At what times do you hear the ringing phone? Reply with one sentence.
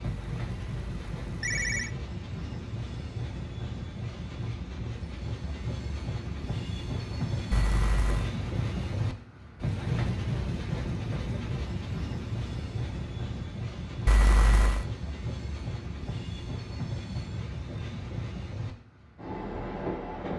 You can hear the ringing phone from 0.1 to 1.9 s, from 7.5 to 8.3 s and from 14.1 to 14.8 s.